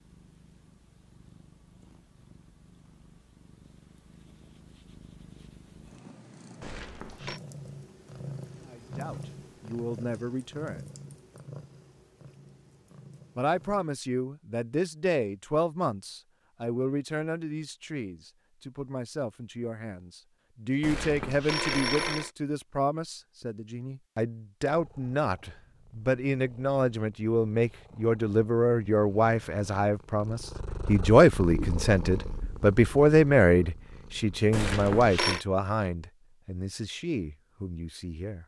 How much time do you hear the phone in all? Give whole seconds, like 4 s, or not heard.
3 s.